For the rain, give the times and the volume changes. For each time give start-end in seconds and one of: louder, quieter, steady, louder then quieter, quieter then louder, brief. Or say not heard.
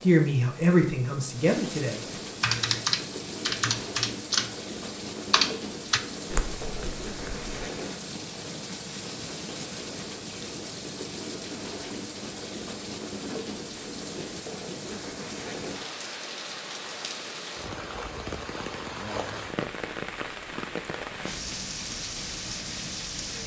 0.0-23.4 steady.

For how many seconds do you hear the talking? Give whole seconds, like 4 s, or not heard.
2 s.